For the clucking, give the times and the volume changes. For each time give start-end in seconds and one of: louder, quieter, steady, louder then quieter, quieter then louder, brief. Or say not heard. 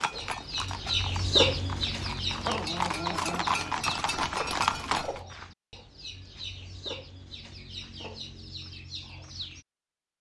0.1-9.7 quieter.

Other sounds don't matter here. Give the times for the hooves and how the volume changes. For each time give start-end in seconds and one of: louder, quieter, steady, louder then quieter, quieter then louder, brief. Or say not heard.
0.0-5.2 louder.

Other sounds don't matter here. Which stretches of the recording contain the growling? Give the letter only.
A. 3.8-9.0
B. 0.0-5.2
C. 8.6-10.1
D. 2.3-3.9
D.